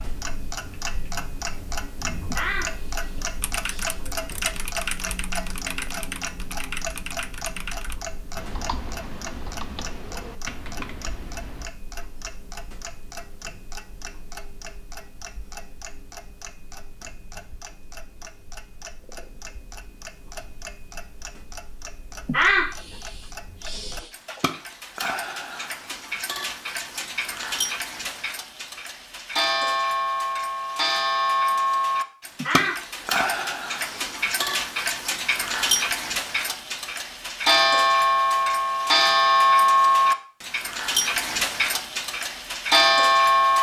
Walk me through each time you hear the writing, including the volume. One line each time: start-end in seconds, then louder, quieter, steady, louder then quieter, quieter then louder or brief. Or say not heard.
not heard.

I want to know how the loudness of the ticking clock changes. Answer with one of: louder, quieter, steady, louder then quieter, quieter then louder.
quieter then louder.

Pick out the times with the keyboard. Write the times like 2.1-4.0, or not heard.
3.4-11.7.